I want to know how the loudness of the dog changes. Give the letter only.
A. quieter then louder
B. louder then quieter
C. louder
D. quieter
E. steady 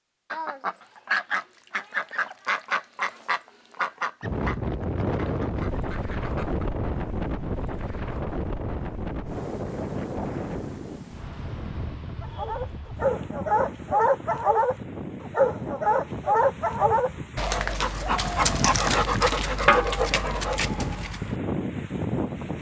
E.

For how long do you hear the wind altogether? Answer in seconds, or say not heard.
18 s.